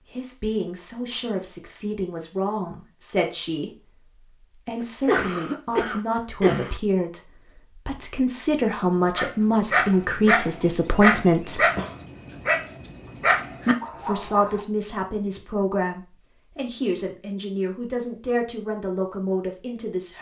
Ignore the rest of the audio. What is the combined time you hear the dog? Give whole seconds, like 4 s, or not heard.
6 s.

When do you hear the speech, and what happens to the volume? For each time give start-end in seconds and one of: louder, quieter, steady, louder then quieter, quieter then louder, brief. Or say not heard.
0.1-11.7 louder
14.0-20.1 steady.